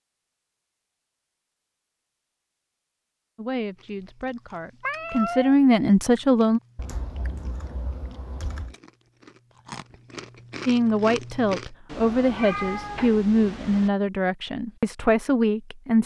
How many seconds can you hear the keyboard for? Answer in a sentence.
The keyboard can be heard for 2 seconds in total.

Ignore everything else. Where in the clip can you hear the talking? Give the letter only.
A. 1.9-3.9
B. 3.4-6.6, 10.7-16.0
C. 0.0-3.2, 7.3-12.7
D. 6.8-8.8
B.